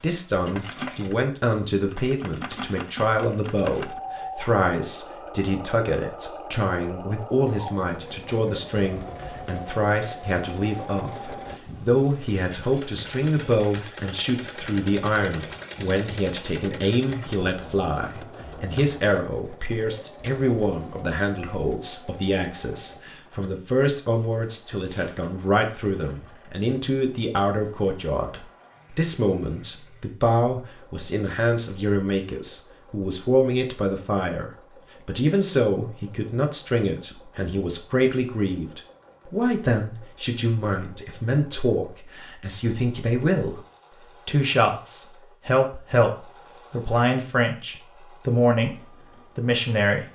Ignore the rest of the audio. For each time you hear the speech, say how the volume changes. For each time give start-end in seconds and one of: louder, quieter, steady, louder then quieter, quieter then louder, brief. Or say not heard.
0.0-43.6 steady
44.2-50.1 steady.